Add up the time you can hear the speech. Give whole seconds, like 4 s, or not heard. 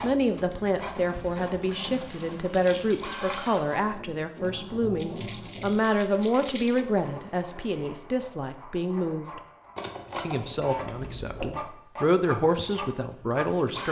13 s.